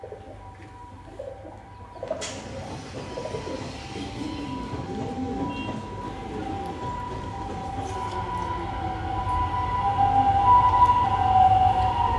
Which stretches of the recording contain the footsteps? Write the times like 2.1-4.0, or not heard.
not heard.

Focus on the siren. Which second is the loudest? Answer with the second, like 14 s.
11 s.